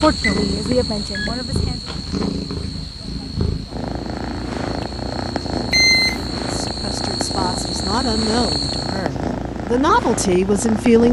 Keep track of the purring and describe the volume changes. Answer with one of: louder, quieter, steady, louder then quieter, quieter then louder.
steady.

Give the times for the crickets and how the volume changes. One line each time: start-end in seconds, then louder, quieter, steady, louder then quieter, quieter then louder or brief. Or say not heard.
0.0-9.1 quieter then louder.